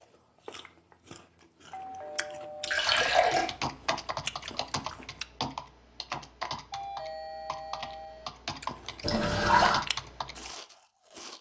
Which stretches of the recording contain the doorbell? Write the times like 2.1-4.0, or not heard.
1.7-2.9, 6.7-8.3.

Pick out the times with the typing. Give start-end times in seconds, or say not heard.
2.9-10.5.